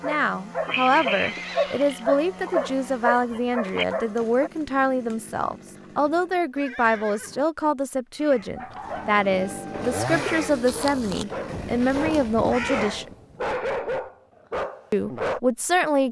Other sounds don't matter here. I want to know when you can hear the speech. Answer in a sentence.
The speech can be heard from 0.0 to 13.2 s and from 14.9 to 16.0 s.